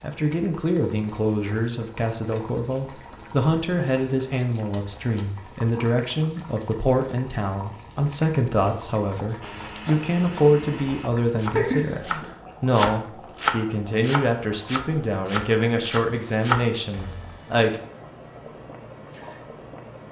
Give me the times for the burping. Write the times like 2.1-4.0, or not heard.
11.6-12.5.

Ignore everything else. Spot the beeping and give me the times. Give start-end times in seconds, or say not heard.
not heard.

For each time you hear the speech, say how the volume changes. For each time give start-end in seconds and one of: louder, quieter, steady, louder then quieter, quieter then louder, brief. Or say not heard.
0.0-17.8 steady.